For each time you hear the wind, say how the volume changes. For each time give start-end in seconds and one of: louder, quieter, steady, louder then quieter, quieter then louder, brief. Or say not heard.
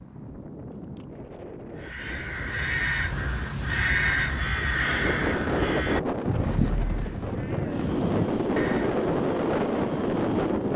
0.0-10.7 louder.